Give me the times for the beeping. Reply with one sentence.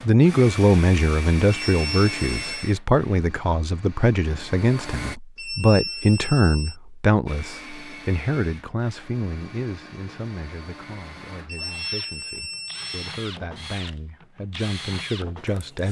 You can hear the beeping from 1.5 to 2.7 s, from 5.3 to 6.8 s and from 11.4 to 13.2 s.